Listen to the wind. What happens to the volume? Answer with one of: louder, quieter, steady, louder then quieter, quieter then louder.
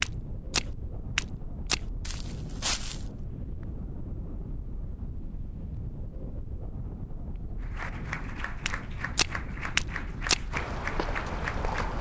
steady.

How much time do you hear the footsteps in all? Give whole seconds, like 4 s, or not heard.
6 s.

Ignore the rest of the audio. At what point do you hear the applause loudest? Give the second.
11 s.